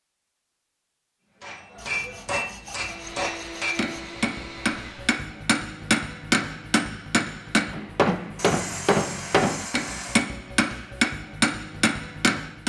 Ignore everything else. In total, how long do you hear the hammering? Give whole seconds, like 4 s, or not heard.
11 s.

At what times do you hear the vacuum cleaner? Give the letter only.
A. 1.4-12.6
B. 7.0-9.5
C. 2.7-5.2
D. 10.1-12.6
C.